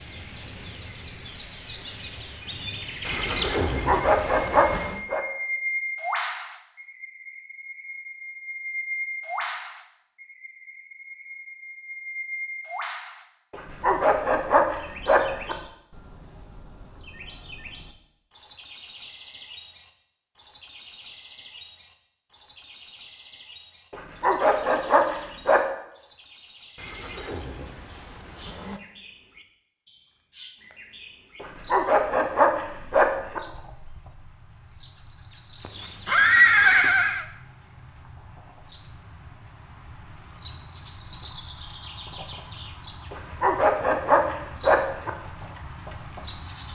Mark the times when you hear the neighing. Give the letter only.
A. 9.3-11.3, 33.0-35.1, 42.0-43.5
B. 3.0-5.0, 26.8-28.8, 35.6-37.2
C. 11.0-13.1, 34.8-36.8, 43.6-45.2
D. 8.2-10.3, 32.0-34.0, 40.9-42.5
B.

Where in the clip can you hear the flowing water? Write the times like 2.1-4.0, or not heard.
not heard.